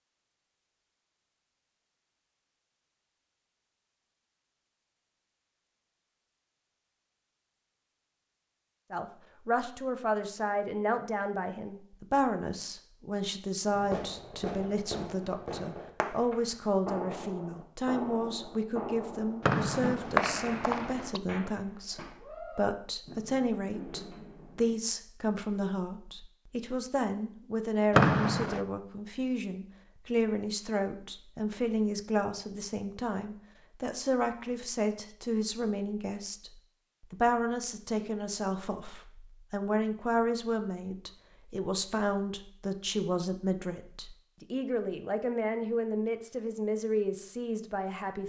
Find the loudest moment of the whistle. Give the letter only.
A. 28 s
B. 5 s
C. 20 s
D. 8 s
A.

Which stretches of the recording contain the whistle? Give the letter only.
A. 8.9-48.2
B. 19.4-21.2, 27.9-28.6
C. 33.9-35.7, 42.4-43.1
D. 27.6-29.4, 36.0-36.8
B.